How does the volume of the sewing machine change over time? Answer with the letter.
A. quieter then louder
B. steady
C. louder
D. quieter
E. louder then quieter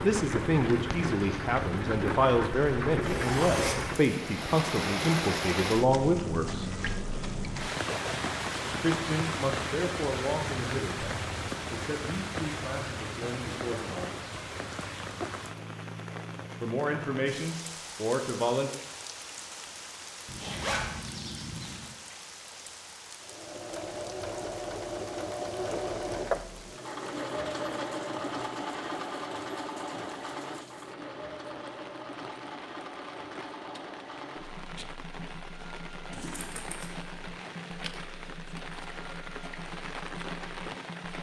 D.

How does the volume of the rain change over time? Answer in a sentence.
The loudness of the rain goes down, then up.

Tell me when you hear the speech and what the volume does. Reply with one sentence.
You can hear the speech from 0.0 to 6.7 s, at a steady volume; from 8.7 to 14.4 s, getting quieter; and briefly from 16.6 to 18.7 s.